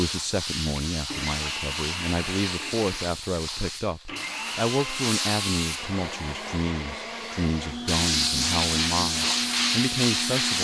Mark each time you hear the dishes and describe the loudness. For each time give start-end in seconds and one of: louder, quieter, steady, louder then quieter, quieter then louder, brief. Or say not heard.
not heard.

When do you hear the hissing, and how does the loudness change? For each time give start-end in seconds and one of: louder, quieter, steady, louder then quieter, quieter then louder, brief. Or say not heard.
0.0-10.5 louder.